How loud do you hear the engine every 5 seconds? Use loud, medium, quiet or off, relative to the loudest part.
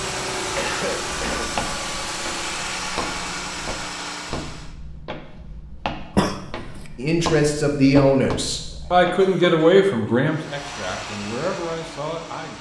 loud, off, medium.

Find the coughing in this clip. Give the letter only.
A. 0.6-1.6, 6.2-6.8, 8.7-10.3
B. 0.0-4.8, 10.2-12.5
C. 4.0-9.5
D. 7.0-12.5
A.